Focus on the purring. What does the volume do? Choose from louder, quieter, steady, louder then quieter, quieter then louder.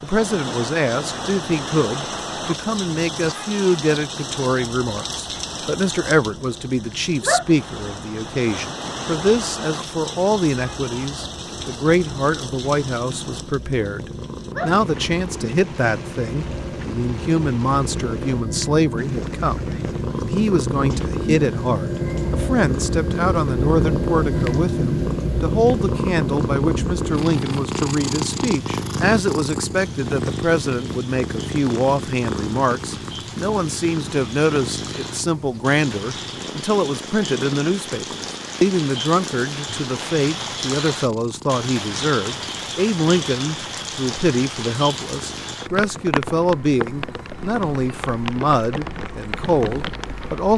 louder then quieter.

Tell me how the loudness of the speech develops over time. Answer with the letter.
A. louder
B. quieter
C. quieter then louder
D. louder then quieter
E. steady
E.